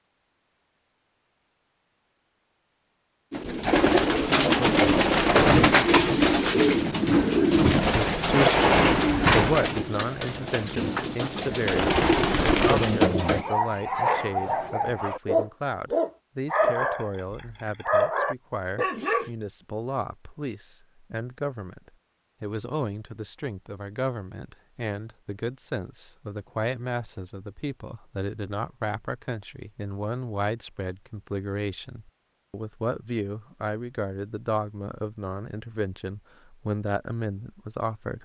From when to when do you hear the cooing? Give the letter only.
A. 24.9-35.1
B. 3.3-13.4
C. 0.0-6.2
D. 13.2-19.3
B.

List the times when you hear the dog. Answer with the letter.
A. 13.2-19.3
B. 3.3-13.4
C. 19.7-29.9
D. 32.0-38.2
A.